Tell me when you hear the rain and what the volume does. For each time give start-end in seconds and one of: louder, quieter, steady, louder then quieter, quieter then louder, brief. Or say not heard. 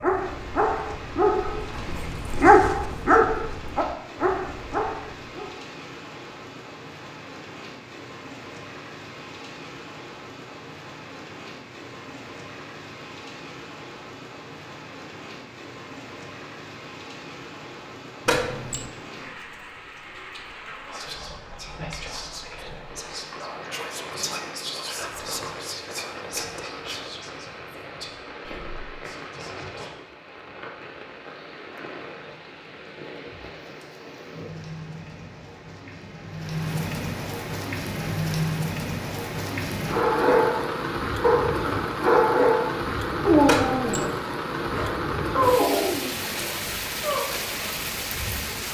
0.0-48.6 louder.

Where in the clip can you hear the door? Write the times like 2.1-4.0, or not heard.
18.2-18.9, 43.5-44.1.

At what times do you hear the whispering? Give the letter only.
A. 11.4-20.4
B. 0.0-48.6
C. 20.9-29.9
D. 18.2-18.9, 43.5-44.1
C.